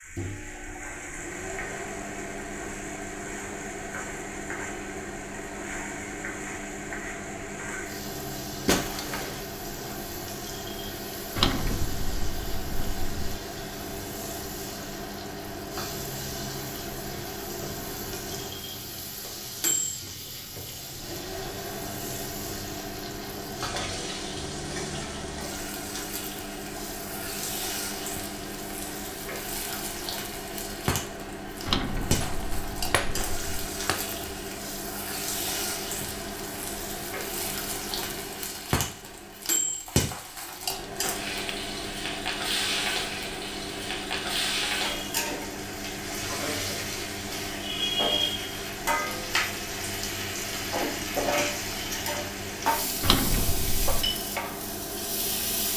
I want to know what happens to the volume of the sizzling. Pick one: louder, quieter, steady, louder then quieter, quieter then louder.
louder.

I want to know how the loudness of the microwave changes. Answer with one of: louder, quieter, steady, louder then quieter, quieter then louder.
steady.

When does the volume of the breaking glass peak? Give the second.
9 s.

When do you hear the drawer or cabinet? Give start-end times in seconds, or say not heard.
11.3-13.3, 31.6-33.6, 53.0-54.1.